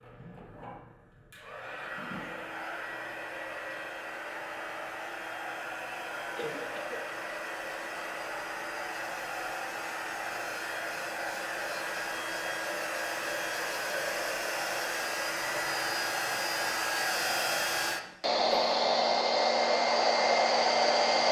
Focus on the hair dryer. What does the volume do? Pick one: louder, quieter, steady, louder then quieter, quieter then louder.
louder.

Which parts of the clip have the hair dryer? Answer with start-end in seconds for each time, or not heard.
0.0-21.2.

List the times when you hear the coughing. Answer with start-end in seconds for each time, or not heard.
6.3-7.0, 18.4-18.8.